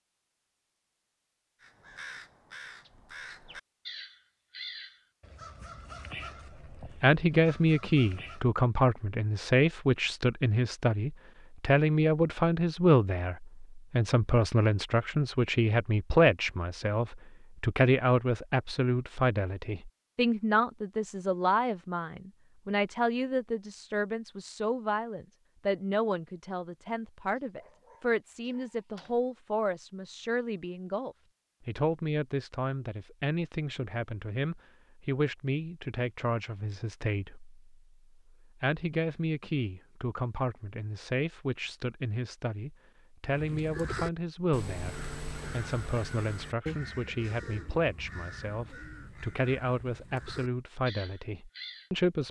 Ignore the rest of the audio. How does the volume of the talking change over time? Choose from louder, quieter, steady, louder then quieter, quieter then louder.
quieter.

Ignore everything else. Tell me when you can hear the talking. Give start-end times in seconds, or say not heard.
7.0-37.5, 38.6-52.2.